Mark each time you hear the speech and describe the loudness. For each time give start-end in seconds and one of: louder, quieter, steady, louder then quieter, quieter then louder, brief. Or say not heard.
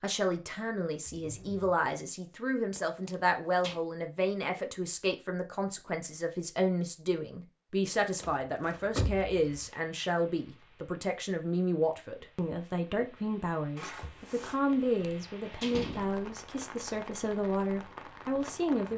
0.0-18.9 steady.